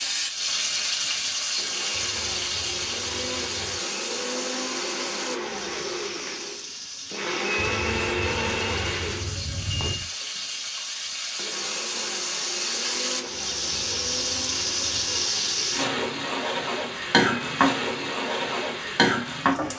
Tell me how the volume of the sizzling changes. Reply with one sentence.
The loudness of the sizzling goes down, then up.